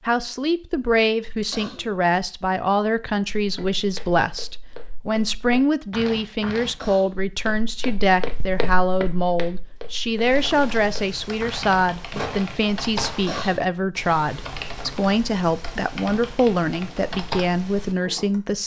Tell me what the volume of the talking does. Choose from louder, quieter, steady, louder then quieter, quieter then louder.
steady.